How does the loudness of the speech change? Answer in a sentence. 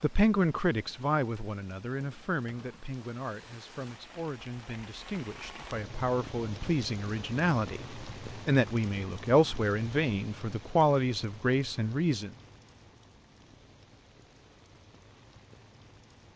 The volume of the speech goes down, then up.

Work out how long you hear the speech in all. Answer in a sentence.
The speech can be heard for 12 seconds in total.